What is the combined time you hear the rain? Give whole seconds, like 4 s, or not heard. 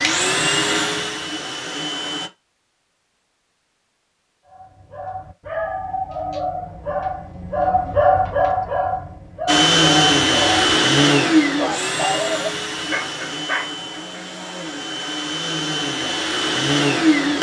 not heard.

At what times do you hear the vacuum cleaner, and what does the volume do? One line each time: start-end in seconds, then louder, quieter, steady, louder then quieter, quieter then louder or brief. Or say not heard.
0.0-2.3 brief
9.4-17.3 quieter then louder.